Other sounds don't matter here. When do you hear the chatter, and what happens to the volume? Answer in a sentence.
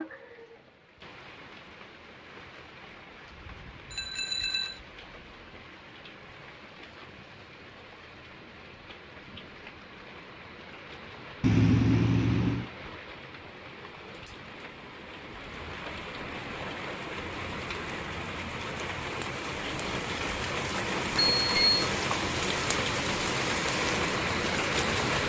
You can't hear the chatter here.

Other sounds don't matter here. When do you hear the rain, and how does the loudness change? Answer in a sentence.
You can hear the rain from 0.0 to 25.2 s, getting louder.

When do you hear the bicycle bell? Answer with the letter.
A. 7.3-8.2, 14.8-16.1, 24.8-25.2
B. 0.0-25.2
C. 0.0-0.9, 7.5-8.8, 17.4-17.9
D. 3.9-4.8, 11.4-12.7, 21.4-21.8
D.